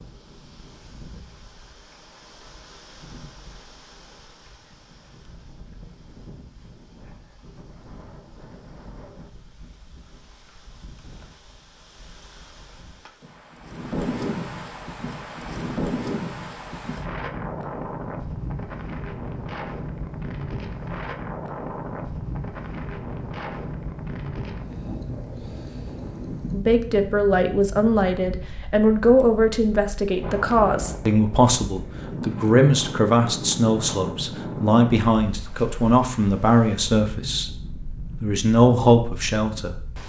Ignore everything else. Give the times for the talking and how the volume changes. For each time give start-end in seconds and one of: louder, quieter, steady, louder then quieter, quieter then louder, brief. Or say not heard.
26.5-37.5 steady
38.2-39.9 brief.